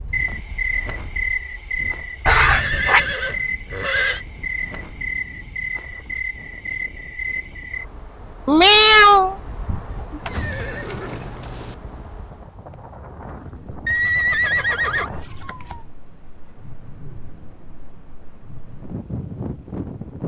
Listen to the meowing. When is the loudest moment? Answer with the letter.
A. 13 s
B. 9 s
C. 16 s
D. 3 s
B.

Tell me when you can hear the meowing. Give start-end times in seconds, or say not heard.
2.2-3.0, 8.4-10.3, 13.8-15.8.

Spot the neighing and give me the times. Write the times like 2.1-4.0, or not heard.
2.3-4.2, 10.2-11.8, 13.8-15.1.